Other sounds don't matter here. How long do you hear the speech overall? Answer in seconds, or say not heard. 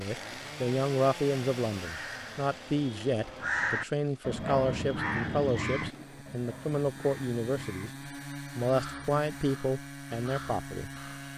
10 s.